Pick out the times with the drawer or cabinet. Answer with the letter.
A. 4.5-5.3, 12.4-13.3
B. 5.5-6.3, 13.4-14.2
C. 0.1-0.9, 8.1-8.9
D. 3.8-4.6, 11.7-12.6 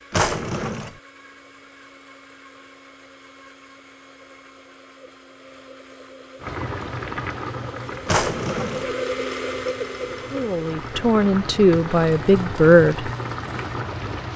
C.